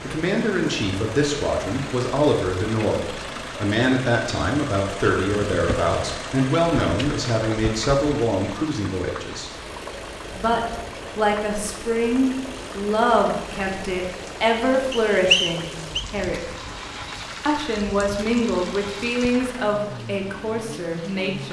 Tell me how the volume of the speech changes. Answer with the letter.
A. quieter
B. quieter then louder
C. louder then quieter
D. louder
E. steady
E.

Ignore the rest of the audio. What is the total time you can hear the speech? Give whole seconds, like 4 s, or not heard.
20 s.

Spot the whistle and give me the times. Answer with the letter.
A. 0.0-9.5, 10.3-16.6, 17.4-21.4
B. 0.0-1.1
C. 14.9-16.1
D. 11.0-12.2
C.